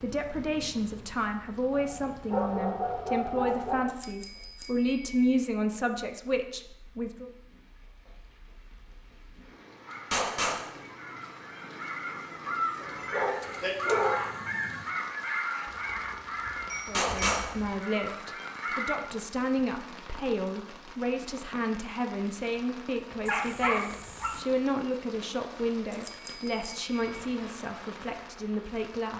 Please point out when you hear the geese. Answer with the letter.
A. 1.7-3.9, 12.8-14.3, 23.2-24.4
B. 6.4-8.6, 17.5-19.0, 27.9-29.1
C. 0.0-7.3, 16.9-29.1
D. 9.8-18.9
D.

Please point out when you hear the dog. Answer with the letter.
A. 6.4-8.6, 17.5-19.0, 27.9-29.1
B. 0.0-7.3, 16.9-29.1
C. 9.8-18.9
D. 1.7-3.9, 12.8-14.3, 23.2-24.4
D.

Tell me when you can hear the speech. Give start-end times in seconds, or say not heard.
0.0-7.3, 16.9-29.1.